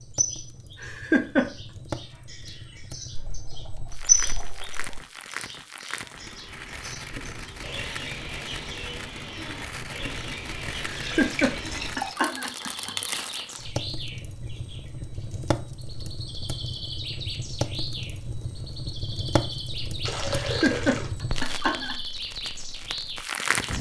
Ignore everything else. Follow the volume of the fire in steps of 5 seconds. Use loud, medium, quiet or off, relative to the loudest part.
medium, medium, loud, loud, loud.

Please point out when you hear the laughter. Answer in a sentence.
The laughter can be heard from 0.8 to 1.5 s, from 10.9 to 12.9 s and from 20.4 to 21.9 s.